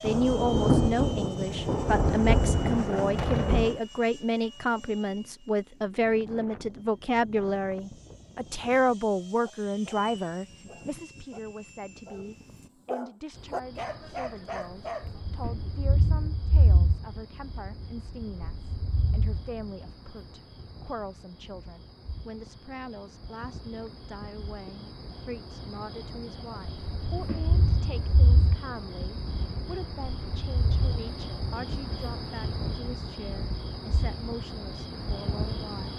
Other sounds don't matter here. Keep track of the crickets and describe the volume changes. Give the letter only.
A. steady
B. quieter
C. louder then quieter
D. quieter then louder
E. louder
E.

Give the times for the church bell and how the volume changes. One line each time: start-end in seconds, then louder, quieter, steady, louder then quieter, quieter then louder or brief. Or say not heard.
not heard.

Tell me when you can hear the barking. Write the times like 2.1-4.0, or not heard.
9.4-15.2.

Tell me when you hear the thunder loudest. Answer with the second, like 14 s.
1 s.